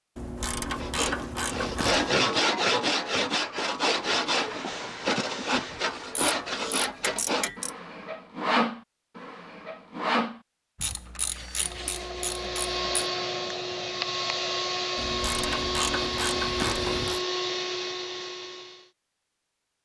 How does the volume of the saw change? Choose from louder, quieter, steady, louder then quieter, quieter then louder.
quieter.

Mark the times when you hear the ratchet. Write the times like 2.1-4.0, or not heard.
0.1-2.1, 5.5-7.7, 10.8-12.8, 14.9-17.2.